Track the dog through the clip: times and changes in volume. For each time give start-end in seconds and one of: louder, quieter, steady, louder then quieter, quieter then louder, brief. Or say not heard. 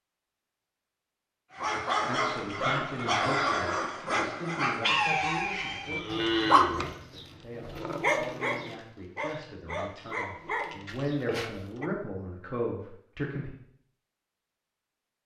1.6-11.9 quieter.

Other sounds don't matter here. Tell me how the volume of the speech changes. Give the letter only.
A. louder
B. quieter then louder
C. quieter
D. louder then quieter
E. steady
B.